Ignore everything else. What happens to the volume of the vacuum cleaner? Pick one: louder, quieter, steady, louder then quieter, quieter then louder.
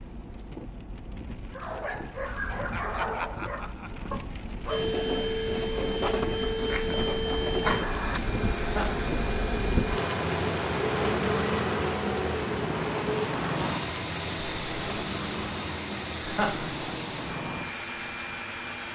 quieter.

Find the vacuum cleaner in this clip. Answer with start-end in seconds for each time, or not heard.
4.7-18.9.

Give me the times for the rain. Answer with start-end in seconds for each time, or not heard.
0.0-18.9.